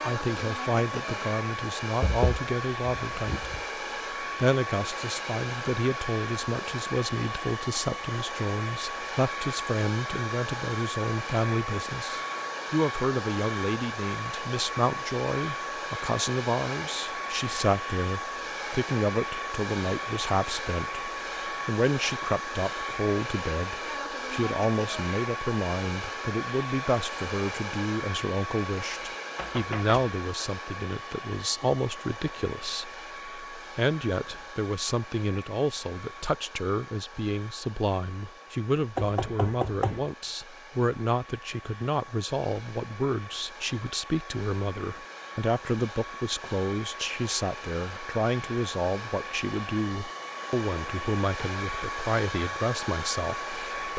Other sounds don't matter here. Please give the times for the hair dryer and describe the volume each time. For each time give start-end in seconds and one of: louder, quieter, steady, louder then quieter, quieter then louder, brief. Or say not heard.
0.0-53.9 quieter then louder.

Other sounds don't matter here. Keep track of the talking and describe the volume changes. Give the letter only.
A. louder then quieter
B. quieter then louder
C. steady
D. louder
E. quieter
C.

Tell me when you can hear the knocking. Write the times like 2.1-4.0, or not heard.
2.0-3.6, 29.4-30.0, 39.0-40.1.